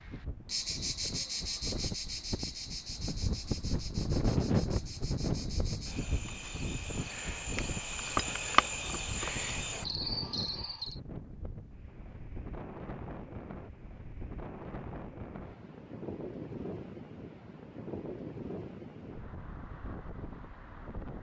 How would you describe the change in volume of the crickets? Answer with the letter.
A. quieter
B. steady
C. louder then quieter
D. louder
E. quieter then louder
E.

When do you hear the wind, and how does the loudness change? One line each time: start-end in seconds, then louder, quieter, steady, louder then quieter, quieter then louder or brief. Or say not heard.
0.0-21.1 quieter.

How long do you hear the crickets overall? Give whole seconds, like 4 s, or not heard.
11 s.